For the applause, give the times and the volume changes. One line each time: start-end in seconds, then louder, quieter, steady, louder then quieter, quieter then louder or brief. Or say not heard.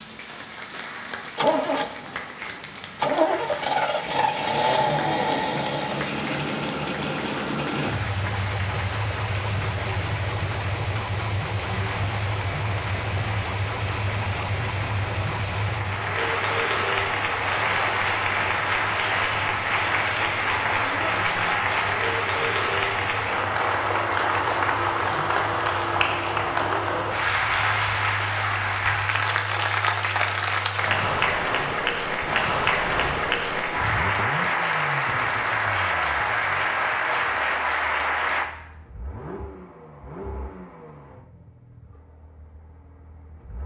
0.0-38.5 louder.